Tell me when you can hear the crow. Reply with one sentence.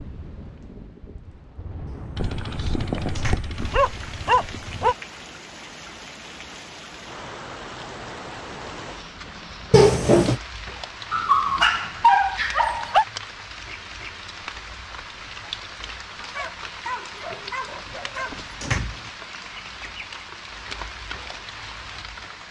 The crow can't be heard in this clip.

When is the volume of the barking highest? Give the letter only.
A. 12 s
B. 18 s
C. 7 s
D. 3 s
A.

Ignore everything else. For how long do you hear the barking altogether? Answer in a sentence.
The barking can be heard for 7 seconds in total.